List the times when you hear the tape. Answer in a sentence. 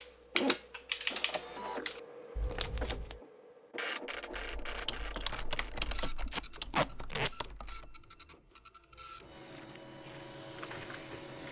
The tape can be heard from 2.4 to 3.1 s and from 6.3 to 7.3 s.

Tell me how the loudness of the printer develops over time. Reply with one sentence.
The volume of the printer goes down, then up.